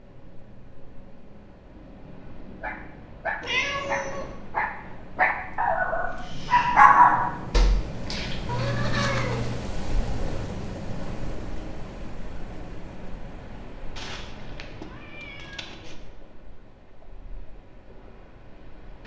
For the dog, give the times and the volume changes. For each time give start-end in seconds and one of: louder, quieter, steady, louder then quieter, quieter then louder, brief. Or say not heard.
2.6-8.3 louder.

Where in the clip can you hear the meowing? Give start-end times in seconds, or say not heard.
3.4-4.3, 8.4-9.7, 13.9-15.9.